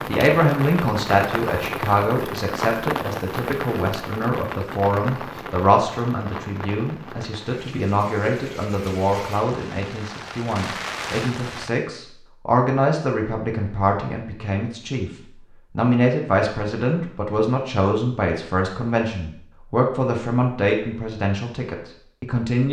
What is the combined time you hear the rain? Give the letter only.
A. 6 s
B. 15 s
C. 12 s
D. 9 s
C.